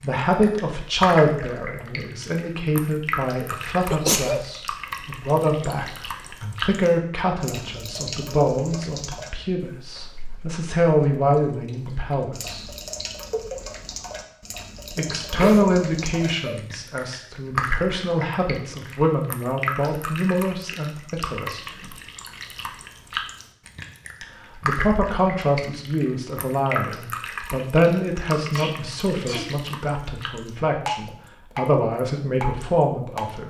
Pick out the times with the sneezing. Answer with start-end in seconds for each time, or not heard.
3.9-4.5, 15.3-16.6, 28.4-29.5.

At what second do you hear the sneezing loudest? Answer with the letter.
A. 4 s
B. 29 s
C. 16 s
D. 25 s
A.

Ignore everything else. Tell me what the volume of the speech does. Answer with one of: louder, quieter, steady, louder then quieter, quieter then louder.
steady.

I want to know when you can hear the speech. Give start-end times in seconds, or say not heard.
0.0-12.7, 14.9-21.9, 24.6-33.4.